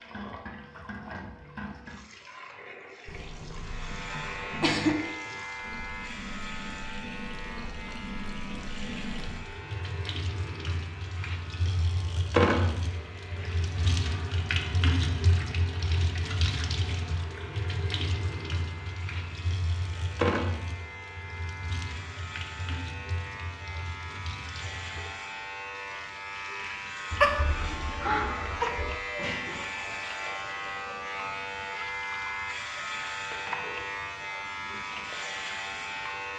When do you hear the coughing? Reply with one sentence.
You can hear the coughing from 3.0 to 5.0 s and from 27.1 to 28.9 s.